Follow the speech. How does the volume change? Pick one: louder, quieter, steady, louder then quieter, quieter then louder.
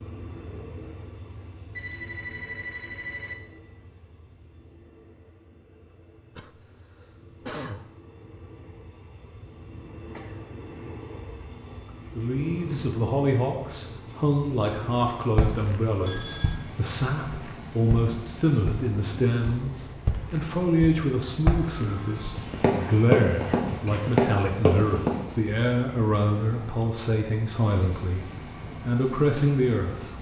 steady.